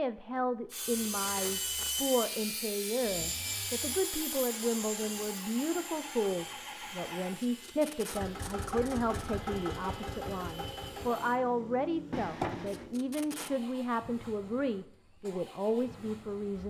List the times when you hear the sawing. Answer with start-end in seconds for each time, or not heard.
0.7-11.4.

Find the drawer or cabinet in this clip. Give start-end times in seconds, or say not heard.
12.1-12.9.